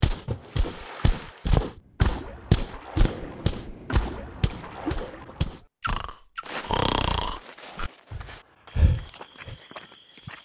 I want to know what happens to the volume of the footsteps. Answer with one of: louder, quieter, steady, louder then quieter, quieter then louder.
quieter.